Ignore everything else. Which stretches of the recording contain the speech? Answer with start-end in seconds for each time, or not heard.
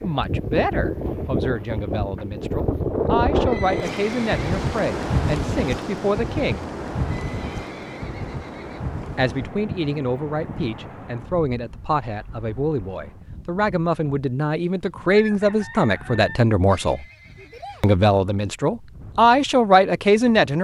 0.0-6.7, 9.2-17.1, 17.8-20.5.